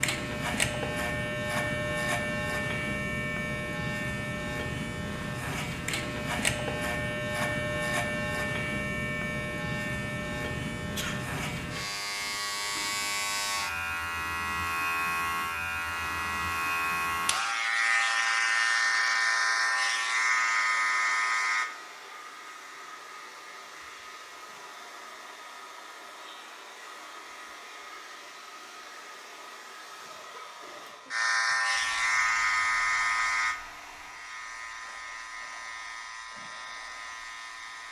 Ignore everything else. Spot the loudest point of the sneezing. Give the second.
11 s.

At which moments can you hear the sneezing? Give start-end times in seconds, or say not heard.
10.9-11.3, 29.9-31.1.